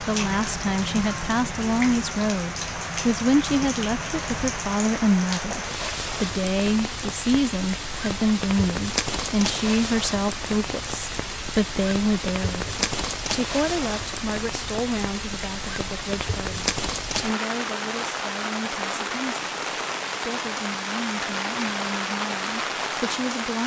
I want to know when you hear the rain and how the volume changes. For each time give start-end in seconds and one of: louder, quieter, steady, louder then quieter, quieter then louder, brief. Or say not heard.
0.0-23.6 steady.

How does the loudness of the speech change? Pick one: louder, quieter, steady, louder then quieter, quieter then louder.
quieter.